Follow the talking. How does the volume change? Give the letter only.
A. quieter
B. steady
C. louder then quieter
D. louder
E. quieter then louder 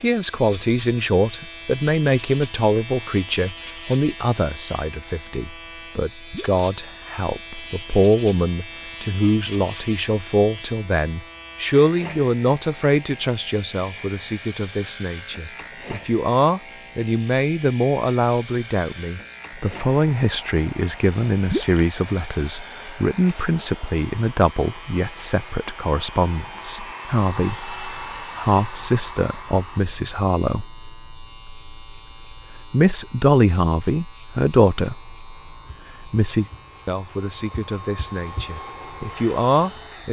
B.